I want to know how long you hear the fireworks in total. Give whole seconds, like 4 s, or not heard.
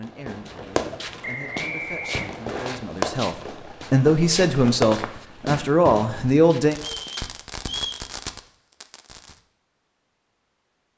9 s.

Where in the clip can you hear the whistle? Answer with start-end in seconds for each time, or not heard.
1.2-2.8, 6.8-8.1.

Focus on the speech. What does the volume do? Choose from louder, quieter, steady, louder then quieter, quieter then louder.
louder.